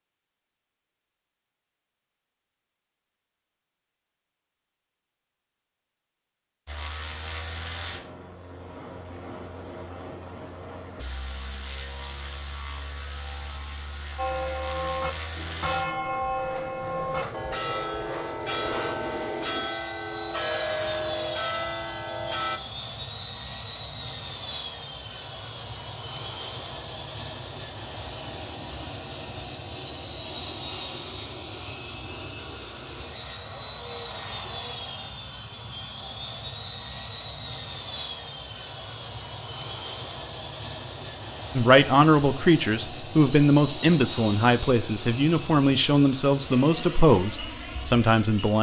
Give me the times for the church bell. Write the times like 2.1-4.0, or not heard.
14.2-22.6.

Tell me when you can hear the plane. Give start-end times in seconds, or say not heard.
6.7-48.5.